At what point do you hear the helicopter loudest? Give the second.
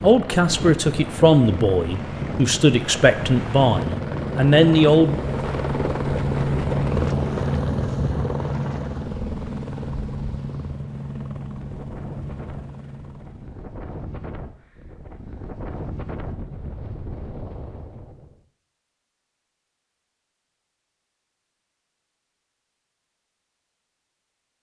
7 s.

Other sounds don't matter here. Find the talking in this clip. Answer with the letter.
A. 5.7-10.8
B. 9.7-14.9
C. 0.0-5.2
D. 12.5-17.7
C.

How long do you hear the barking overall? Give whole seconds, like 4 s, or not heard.
not heard.